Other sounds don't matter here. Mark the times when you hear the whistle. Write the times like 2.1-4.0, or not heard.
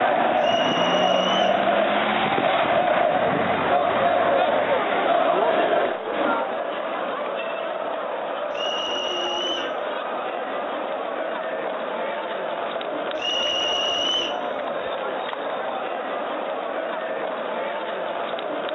0.4-1.6, 8.5-9.8, 13.2-14.4.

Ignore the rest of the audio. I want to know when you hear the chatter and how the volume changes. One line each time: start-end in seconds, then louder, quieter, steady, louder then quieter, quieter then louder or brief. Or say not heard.
0.0-18.6 quieter.